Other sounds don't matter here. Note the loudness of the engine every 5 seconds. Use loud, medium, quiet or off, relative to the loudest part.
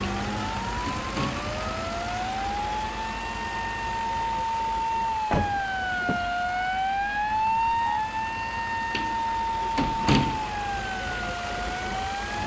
loud, medium, loud.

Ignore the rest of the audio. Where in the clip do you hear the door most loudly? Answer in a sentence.
The volume of the door peaks at 10 seconds.